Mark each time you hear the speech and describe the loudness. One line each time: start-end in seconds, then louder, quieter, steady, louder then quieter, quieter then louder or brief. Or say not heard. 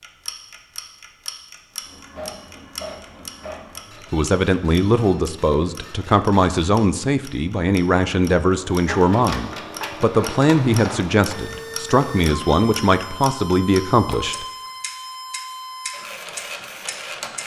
4.1-14.4 steady.